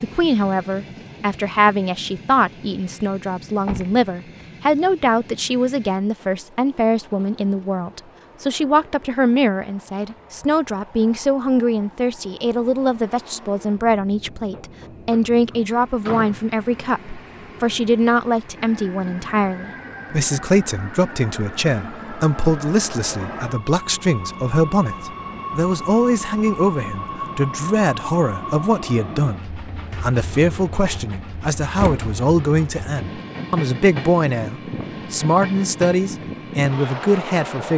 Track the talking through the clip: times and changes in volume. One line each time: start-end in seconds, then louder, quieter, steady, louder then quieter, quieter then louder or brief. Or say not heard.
0.0-37.7 steady.